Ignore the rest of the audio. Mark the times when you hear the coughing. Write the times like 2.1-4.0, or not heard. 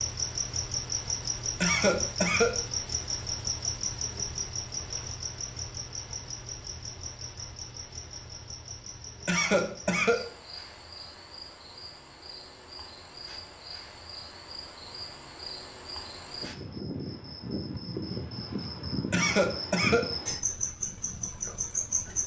1.6-2.6, 9.2-10.3, 19.1-20.1.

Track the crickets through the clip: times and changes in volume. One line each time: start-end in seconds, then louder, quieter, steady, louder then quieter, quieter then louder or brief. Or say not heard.
0.0-22.2 quieter then louder.